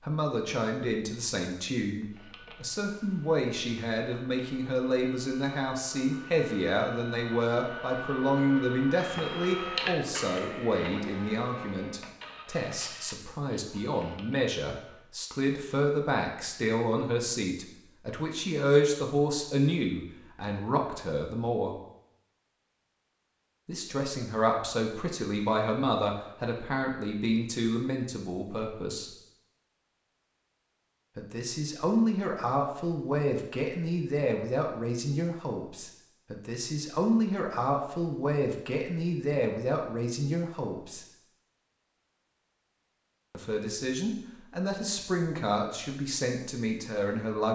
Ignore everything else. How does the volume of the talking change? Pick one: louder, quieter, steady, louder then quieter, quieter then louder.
steady.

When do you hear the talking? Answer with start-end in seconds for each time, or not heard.
0.0-21.8, 23.6-29.1, 31.1-41.0, 43.3-47.5.